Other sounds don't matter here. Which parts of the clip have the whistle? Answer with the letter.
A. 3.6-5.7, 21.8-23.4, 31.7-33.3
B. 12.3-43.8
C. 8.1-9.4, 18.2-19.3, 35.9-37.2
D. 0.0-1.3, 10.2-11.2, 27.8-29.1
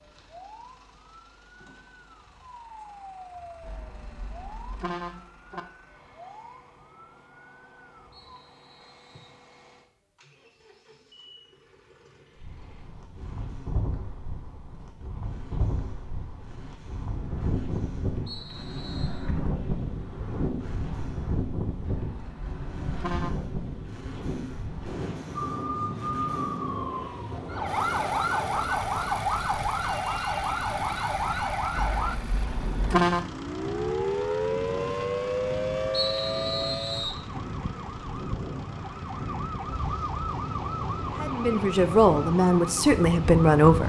C.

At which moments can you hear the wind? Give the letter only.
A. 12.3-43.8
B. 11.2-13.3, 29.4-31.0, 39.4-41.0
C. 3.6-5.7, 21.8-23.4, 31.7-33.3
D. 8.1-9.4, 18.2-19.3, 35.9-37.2
A.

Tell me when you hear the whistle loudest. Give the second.
36 s.